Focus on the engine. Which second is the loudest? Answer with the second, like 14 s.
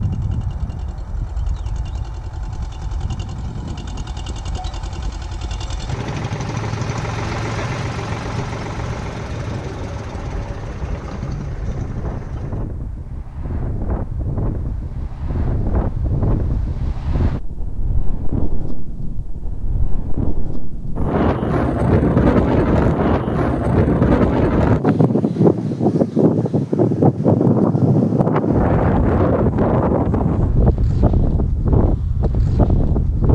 7 s.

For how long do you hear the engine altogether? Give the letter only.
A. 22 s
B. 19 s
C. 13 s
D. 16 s
C.